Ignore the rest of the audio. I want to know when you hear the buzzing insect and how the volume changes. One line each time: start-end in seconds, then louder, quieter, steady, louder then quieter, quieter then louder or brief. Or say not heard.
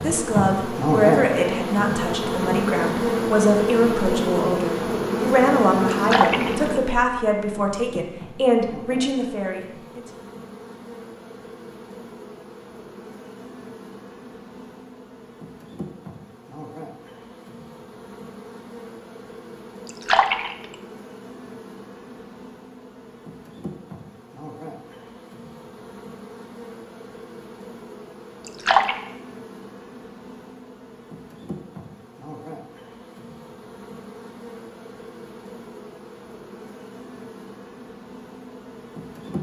0.0-39.3 quieter.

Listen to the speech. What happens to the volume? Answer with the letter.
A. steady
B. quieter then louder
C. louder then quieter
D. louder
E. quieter
A.